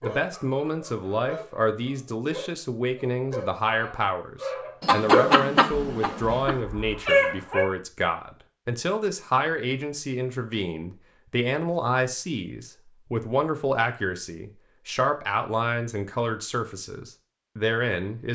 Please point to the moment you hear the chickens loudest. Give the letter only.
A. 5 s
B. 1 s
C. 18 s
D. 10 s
A.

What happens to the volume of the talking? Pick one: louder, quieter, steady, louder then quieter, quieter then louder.
steady.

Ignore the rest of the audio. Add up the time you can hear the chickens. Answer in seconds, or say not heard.
2 s.